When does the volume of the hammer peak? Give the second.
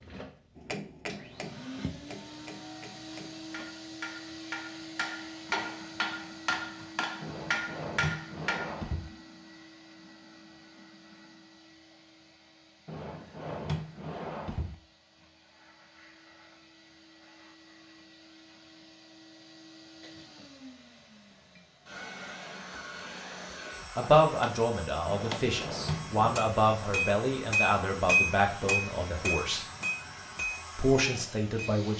28 s.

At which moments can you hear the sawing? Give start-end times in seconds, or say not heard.
not heard.